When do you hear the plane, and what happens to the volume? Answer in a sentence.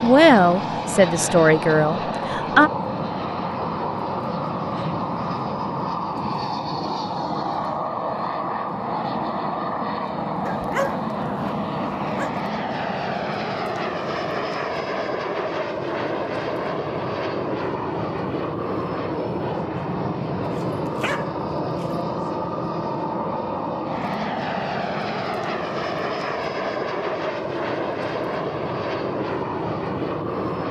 The plane can be heard from 0.0 to 30.6 s, at a steady volume.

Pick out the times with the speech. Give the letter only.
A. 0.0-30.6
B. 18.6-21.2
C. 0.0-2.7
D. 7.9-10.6
C.